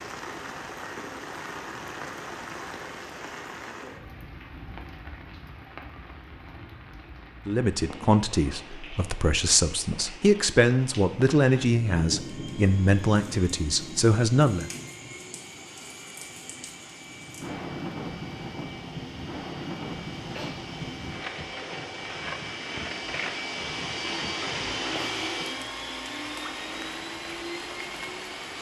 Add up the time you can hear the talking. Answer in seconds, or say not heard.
7 s.